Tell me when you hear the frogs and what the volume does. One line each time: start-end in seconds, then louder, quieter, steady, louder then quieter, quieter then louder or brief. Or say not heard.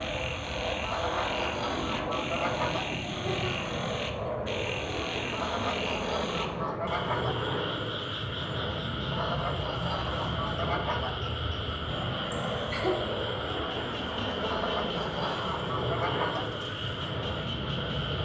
0.0-18.1 steady.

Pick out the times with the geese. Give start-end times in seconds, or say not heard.
0.8-2.9, 5.3-7.3, 9.1-11.1, 14.4-16.4.